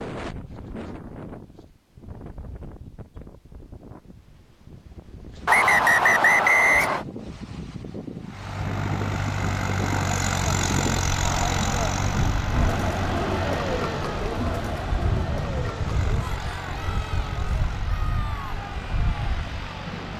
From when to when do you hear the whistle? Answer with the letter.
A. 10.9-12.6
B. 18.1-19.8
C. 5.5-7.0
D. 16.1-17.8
C.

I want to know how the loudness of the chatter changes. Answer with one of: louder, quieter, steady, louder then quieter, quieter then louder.
quieter.